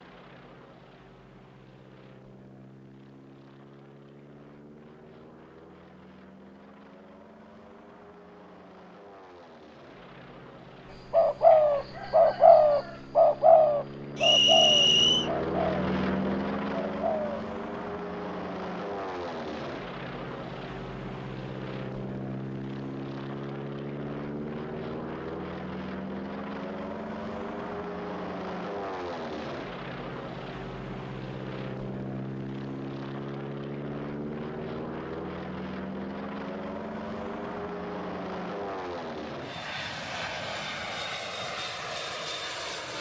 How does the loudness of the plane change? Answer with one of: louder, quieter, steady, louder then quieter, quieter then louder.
louder.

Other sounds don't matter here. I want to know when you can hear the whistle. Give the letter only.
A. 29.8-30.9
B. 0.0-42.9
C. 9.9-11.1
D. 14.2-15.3
D.